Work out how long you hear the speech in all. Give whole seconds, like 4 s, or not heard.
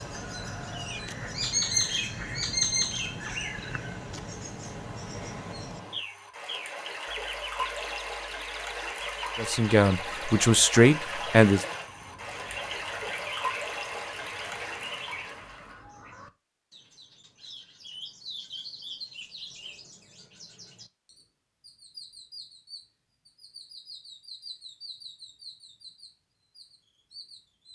2 s.